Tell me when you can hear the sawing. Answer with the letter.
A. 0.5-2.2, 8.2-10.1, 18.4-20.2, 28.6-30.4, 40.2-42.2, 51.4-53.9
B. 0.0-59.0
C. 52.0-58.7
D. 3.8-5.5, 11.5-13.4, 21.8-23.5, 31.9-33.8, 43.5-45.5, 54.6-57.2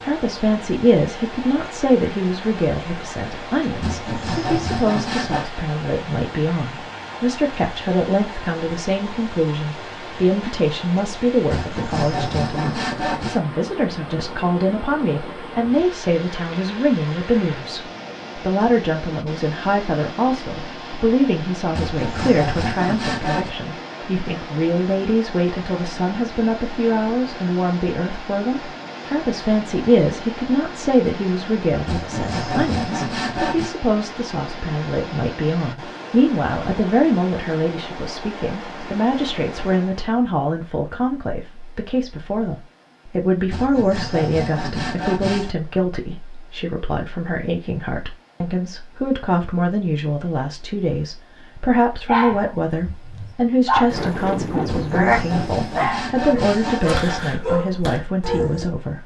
D.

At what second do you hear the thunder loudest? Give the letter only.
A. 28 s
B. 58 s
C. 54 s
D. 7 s
C.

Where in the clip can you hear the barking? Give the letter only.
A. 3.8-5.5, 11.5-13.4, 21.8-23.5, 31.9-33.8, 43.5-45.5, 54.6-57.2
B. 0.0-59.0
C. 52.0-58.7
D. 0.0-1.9
C.